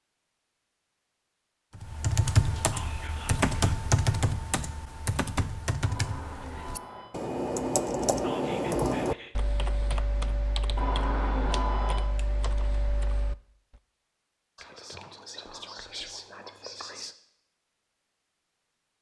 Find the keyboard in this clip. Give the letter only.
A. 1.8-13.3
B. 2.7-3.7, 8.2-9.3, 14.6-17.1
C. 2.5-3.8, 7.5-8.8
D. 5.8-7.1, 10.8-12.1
A.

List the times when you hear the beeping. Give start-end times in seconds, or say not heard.
5.8-7.1, 10.8-12.1.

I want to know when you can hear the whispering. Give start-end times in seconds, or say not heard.
2.7-3.7, 8.2-9.3, 14.6-17.1.